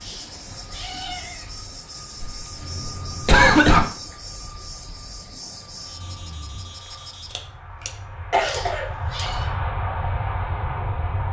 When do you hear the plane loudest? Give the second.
10 s.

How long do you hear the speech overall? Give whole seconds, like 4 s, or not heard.
not heard.